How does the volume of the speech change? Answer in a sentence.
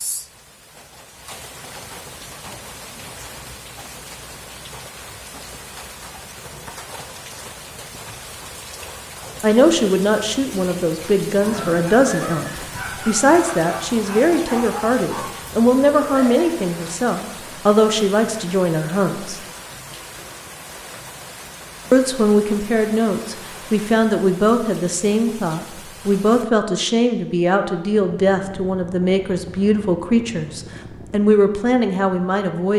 The loudness of the speech stays about the same.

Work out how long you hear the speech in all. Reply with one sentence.
The speech can be heard for 21 seconds in total.